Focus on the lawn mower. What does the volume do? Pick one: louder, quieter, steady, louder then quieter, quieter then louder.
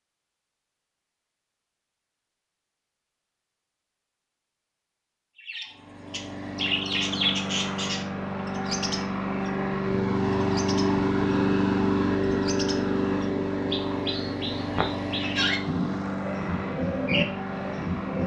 louder then quieter.